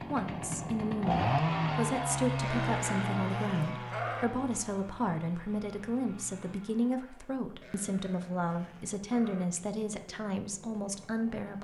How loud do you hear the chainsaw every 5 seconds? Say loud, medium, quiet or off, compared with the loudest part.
loud, quiet, quiet.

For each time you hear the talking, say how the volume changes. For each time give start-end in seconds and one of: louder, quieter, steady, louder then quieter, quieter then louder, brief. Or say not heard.
0.1-11.6 steady.